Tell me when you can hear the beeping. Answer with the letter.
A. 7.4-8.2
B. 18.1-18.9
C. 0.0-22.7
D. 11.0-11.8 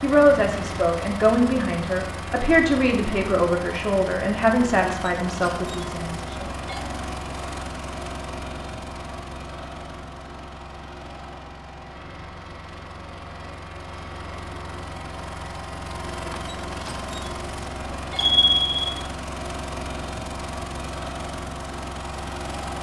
B.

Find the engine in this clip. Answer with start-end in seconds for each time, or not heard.
0.0-22.7.